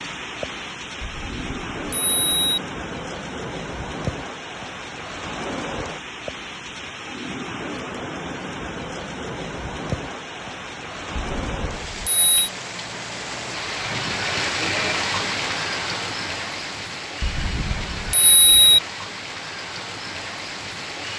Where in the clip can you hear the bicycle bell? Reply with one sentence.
The bicycle bell can be heard from 1.0 to 2.6 s, from 11.2 to 12.5 s and from 17.2 to 18.8 s.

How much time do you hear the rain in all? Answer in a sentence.
You can hear the rain for 21 seconds altogether.